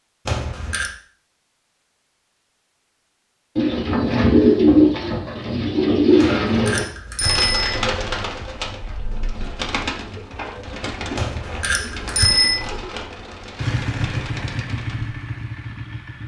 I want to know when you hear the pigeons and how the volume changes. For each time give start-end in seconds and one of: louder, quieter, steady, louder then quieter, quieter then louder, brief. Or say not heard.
3.5-15.2 quieter.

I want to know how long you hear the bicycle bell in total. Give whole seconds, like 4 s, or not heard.
4 s.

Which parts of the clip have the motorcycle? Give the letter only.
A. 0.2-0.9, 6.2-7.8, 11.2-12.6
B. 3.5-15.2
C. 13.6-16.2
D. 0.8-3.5
C.